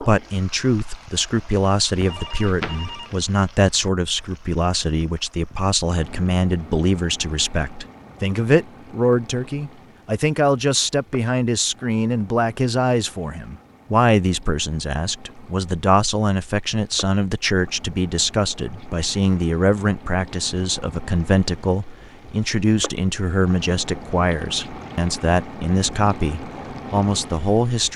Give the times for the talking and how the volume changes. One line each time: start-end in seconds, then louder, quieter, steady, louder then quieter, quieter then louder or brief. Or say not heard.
0.0-27.9 steady.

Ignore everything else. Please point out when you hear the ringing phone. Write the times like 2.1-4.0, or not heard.
1.9-3.1.